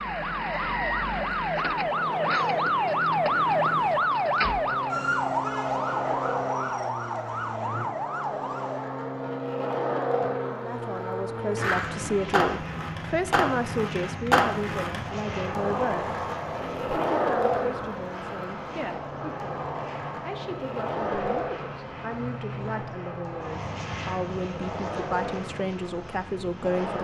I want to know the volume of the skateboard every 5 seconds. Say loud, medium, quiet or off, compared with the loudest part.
medium, medium, loud, loud, medium, medium.